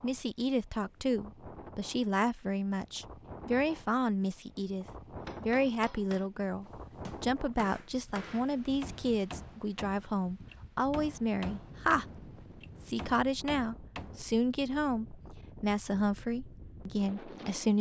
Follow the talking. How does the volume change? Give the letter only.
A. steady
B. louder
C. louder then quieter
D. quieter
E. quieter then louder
A.